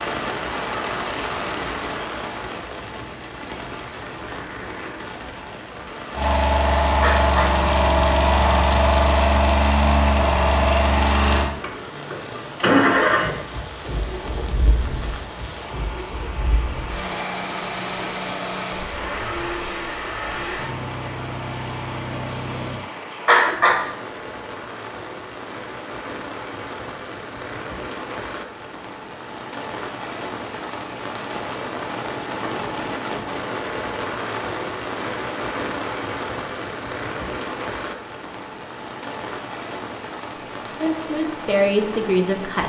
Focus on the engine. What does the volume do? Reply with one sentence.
The volume of the engine goes down.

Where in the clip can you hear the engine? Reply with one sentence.
The engine can be heard from 6.2 to 22.9 s.